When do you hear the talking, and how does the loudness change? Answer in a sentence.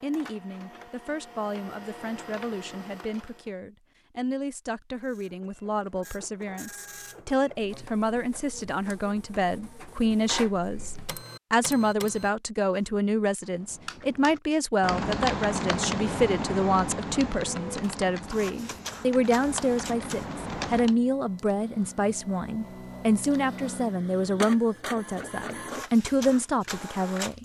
The talking can be heard from 0.0 to 27.4 s, getting louder.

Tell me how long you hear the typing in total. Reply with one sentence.
The typing can be heard for 7 seconds in total.